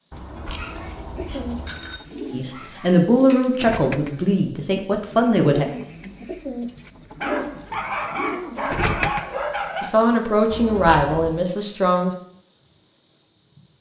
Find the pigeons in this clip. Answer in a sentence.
The pigeons can be heard from 1.1 to 10.2 s.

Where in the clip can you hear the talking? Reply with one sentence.
You can hear the talking from 2.3 to 5.7 s and from 9.8 to 12.1 s.